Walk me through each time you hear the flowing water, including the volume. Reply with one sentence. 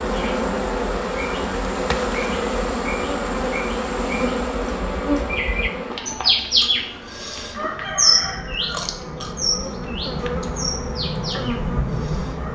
The flowing water can't be heard in this clip.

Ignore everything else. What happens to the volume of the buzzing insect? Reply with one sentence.
The loudness of the buzzing insect goes down, then up.